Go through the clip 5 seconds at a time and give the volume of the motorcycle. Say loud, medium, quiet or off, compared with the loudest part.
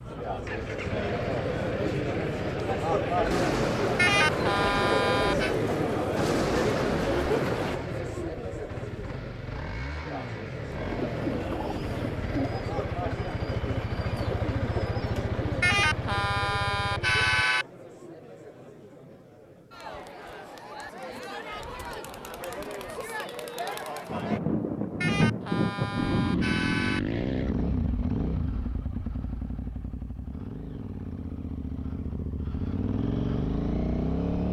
medium, medium, medium, medium, off, loud, loud.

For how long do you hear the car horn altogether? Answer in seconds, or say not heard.
6 s.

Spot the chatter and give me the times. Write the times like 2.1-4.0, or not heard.
0.0-24.4.